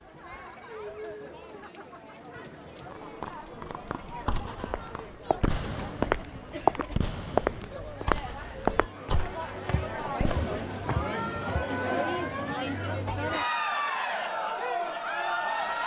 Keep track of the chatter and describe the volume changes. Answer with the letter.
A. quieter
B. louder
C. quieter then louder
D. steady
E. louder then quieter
B.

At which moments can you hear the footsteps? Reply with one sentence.
The footsteps can be heard from 4.6 to 11.7 s.